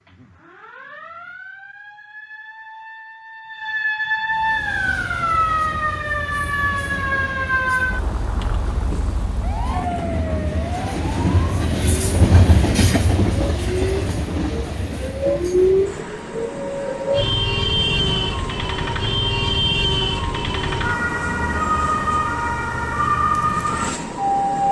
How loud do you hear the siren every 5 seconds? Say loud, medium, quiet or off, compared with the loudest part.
medium, loud, medium, loud, loud.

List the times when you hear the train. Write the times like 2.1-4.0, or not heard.
4.3-24.6.